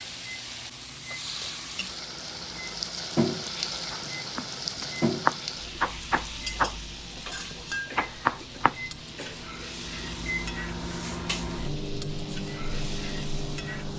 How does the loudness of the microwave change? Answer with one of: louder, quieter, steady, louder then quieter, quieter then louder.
louder.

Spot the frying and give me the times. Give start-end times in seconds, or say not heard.
0.0-13.9.